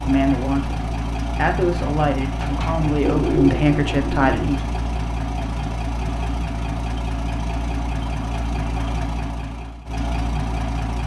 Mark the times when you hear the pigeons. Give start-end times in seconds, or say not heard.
2.4-4.6.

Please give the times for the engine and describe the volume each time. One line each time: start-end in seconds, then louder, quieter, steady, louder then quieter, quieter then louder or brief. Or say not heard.
0.0-11.0 steady.